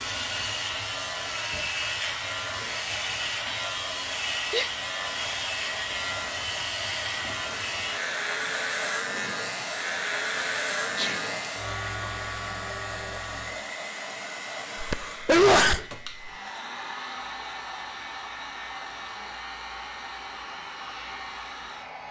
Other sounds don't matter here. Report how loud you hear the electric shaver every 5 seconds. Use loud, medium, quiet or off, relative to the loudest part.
loud, loud, loud, quiet, quiet.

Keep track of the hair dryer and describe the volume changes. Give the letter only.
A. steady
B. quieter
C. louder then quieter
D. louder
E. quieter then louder
A.